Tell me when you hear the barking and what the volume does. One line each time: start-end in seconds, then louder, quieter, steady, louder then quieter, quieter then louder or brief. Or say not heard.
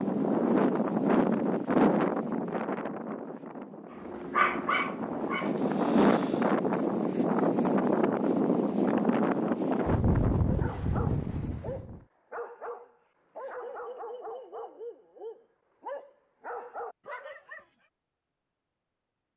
4.0-6.5 brief
10.4-17.6 steady.